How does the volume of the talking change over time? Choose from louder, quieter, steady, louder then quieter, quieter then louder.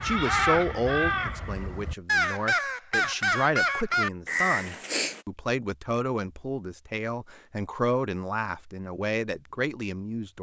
steady.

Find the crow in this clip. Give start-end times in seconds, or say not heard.
0.0-5.2.